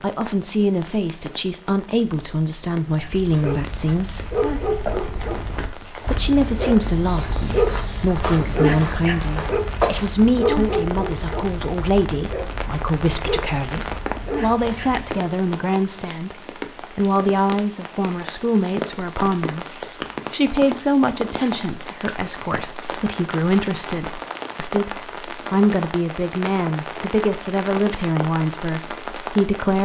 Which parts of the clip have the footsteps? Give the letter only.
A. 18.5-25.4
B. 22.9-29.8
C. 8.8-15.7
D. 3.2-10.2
D.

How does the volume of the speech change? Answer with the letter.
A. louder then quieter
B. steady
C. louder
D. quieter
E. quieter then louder
B.